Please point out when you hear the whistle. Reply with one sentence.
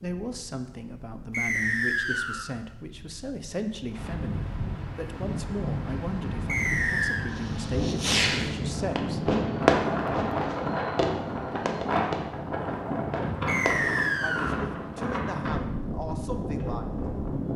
You can hear the whistle from 1.3 to 2.5 s, from 6.5 to 7.2 s and from 13.4 to 14.6 s.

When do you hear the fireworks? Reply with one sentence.
The fireworks can be heard from 7.3 to 15.1 s.